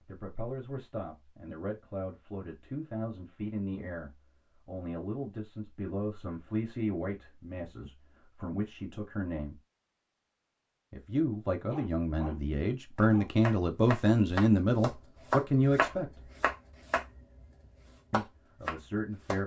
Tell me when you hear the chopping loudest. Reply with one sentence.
The volume of the chopping peaks at 16 seconds.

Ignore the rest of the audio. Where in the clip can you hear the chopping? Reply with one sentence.
You can hear the chopping from 12.9 to 19.4 s.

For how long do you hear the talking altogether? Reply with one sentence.
The talking can be heard for 16 seconds in total.